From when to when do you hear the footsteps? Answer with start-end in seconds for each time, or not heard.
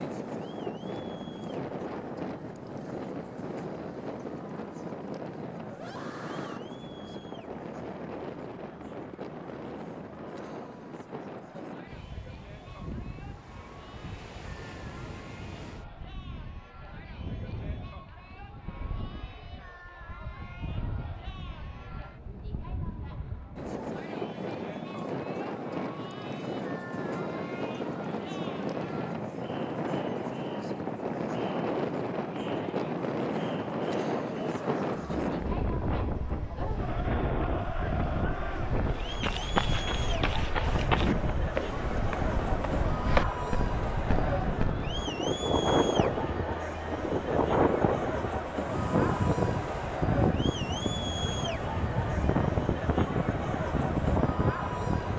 38.9-44.8.